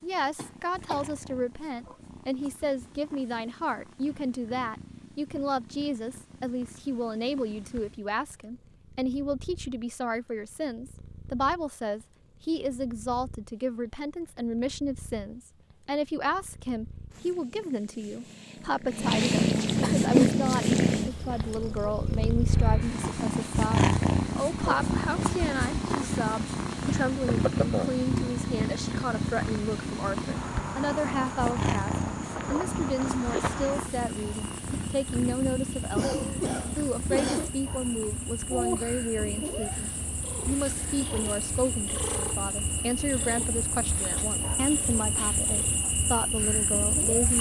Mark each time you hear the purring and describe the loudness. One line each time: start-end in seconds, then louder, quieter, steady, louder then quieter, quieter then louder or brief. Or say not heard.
0.0-47.3 louder then quieter.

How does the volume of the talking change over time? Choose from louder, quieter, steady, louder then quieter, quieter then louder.
steady.